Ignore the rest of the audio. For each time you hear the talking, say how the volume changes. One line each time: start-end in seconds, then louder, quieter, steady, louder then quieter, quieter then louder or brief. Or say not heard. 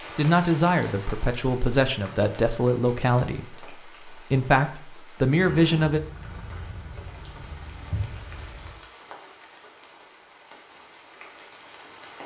0.1-6.0 steady.